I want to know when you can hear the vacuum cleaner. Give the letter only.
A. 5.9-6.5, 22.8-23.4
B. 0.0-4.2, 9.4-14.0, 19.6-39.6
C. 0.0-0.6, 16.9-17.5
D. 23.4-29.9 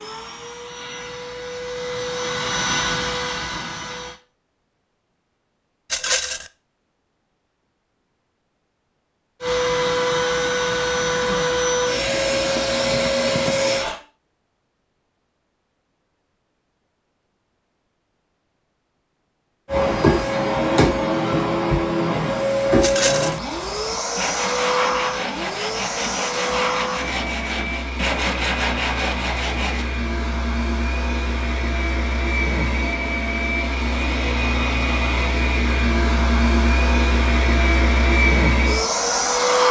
B.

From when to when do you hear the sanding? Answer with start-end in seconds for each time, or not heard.
23.4-29.9.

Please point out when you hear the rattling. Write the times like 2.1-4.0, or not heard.
5.9-6.5, 22.8-23.4.